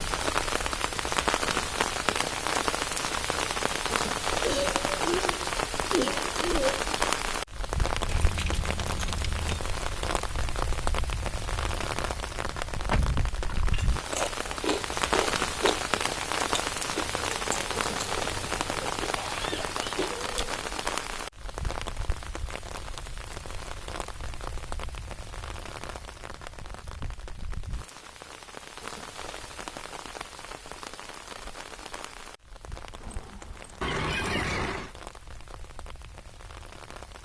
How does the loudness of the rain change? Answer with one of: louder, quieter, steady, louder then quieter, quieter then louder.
quieter.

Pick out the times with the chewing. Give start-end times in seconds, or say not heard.
14.1-20.6.